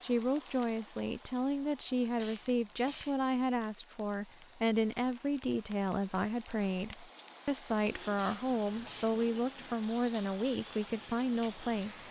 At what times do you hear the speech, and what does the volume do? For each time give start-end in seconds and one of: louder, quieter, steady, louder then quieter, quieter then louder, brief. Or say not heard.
0.0-12.0 steady.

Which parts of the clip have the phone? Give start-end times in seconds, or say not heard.
not heard.